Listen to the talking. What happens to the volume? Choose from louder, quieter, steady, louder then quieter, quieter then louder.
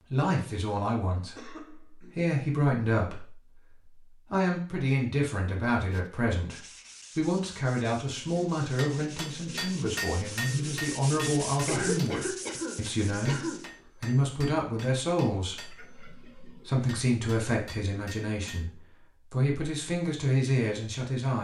steady.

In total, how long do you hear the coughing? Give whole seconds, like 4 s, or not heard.
3 s.